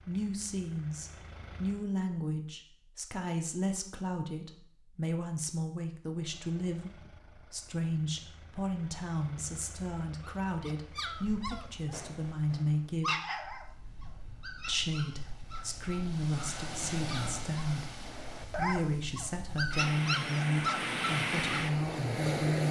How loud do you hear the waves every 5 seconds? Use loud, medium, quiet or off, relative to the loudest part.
off, off, quiet, medium, loud.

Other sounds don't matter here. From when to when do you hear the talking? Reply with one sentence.
The talking can be heard from 0.0 to 13.2 s and from 14.7 to 22.6 s.